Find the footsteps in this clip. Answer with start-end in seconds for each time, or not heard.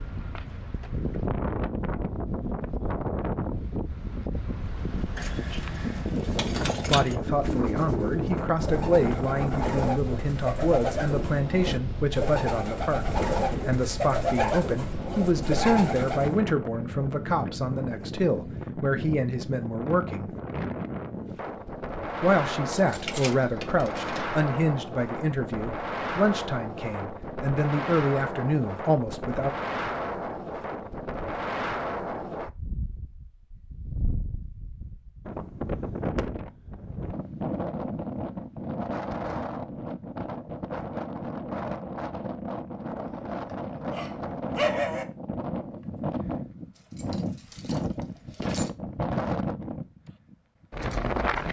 not heard.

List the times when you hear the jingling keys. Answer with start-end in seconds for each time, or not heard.
5.2-7.2, 22.7-24.2, 46.8-48.7.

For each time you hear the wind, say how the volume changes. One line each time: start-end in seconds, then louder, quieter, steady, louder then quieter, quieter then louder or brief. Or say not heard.
0.0-51.4 steady.